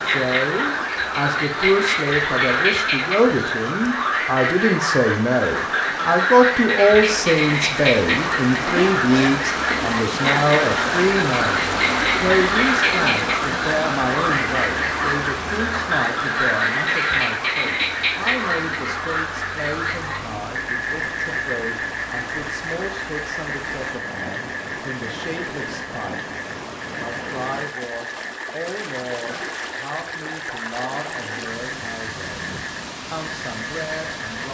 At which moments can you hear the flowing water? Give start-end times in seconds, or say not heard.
0.0-34.4.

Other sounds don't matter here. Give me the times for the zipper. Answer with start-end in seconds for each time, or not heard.
8.6-9.4.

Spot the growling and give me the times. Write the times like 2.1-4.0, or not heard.
not heard.